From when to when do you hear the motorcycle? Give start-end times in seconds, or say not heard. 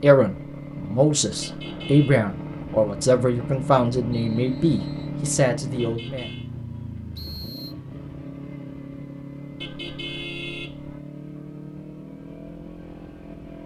0.1-13.6.